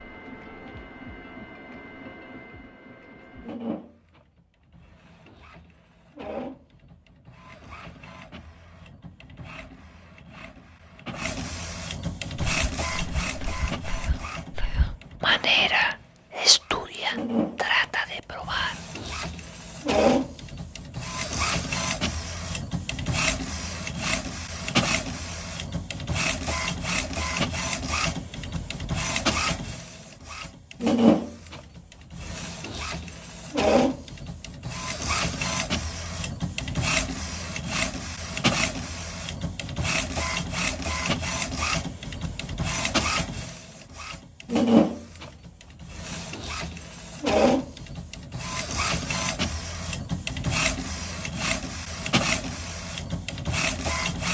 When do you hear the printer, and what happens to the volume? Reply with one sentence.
You can hear the printer from 0.0 to 54.3 s, getting louder.